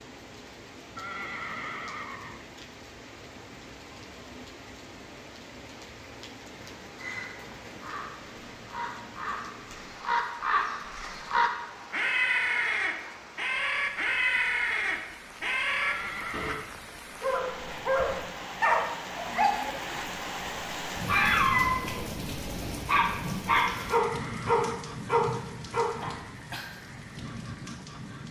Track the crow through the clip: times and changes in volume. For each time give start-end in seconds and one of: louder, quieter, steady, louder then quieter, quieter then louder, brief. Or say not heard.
6.8-16.6 louder.